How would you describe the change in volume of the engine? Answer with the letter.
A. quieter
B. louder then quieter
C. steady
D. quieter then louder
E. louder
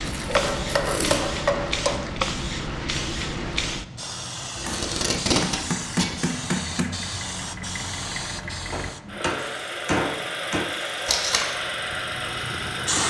E.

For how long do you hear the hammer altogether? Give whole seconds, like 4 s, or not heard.
6 s.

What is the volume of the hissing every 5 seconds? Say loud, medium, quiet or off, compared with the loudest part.
loud, medium, loud.